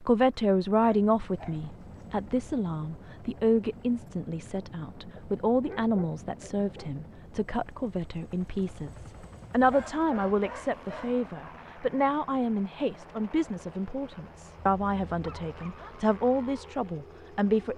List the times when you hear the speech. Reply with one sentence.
You can hear the speech from 0.0 to 17.7 s.